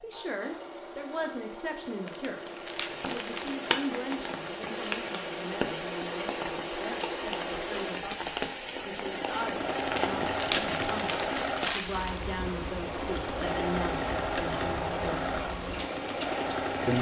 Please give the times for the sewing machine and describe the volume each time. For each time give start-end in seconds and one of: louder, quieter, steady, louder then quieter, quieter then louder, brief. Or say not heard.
0.0-16.9 louder.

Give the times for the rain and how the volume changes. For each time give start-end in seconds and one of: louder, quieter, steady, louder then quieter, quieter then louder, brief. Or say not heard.
2.4-16.9 steady.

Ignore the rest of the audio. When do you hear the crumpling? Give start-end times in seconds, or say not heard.
2.0-3.6, 9.8-12.3.